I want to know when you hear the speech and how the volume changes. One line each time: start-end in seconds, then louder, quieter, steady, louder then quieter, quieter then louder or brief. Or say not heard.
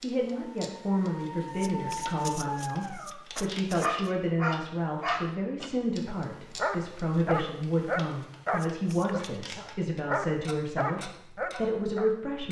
0.0-12.4 steady.